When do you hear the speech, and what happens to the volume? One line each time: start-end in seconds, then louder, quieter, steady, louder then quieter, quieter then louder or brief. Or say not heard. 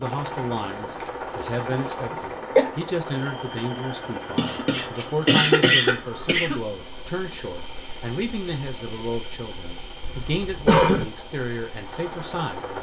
0.0-12.7 steady.